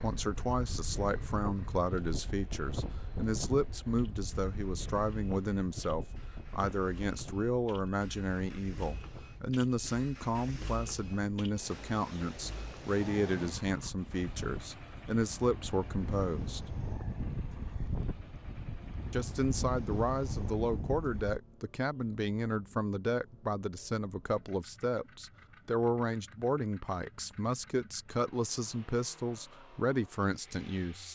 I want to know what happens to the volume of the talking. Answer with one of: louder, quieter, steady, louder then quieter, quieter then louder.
steady.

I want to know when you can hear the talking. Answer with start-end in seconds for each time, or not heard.
0.0-16.6, 19.1-31.0.